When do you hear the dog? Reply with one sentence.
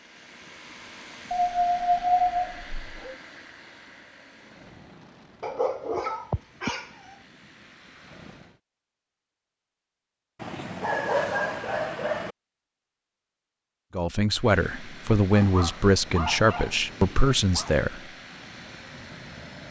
The dog can be heard from 1.3 to 3.1 s, from 5.4 to 7.2 s, from 10.4 to 12.3 s and from 15.3 to 17.8 s.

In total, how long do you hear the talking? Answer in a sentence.
You can hear the talking for 4 seconds altogether.